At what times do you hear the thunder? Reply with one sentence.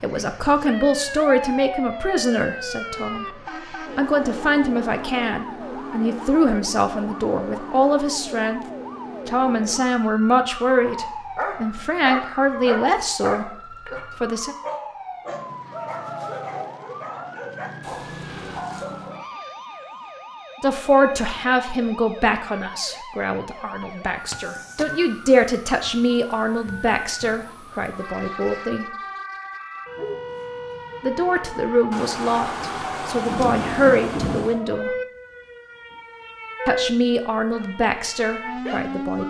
You can hear the thunder from 31.9 to 34.6 s.